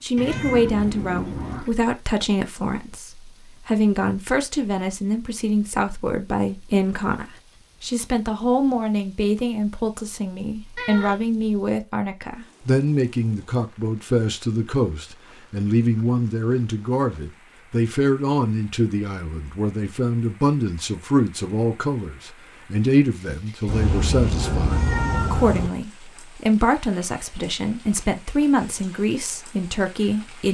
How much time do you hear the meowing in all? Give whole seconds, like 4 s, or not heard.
4 s.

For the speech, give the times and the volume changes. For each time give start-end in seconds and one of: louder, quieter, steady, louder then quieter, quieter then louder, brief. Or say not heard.
0.0-30.4 steady.